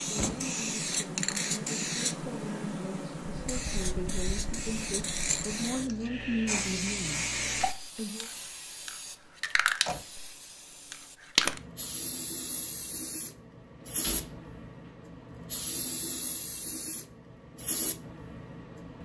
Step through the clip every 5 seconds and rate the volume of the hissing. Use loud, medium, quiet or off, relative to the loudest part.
loud, loud, loud, medium.